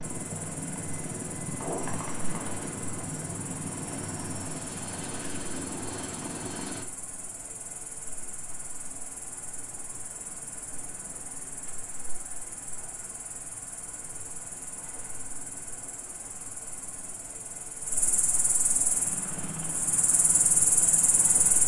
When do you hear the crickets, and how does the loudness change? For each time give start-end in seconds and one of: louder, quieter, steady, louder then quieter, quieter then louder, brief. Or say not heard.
0.0-21.6 louder.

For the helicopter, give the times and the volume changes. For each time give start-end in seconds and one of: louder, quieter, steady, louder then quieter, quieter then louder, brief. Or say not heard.
0.0-6.8 steady
18.9-21.6 brief.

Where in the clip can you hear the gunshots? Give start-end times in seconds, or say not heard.
1.6-2.7.